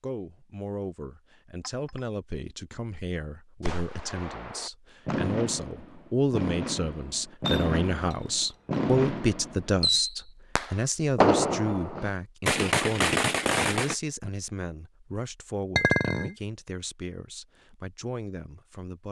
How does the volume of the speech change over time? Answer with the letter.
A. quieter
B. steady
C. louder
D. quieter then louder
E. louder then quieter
E.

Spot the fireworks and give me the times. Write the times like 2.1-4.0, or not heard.
3.6-13.9.